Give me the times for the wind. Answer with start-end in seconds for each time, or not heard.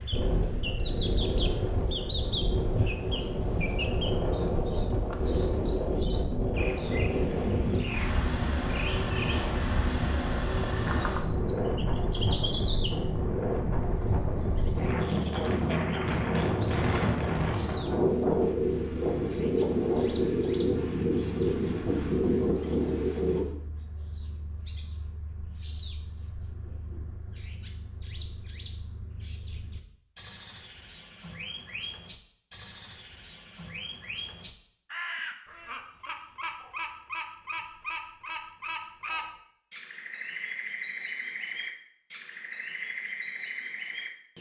0.0-23.4.